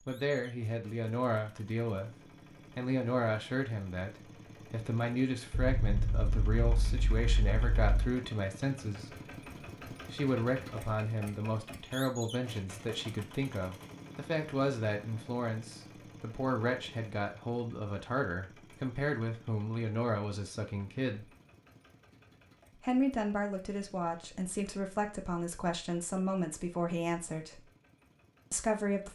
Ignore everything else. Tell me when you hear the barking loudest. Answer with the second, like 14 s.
6 s.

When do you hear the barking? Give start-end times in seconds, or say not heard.
5.5-8.1.